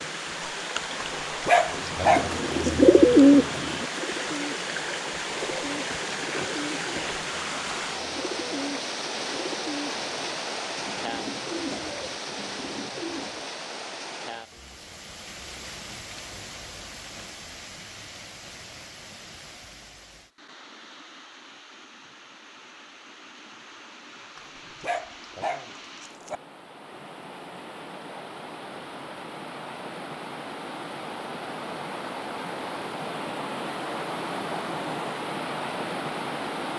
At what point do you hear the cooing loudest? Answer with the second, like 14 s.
3 s.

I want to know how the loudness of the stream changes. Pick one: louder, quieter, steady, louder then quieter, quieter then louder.
quieter then louder.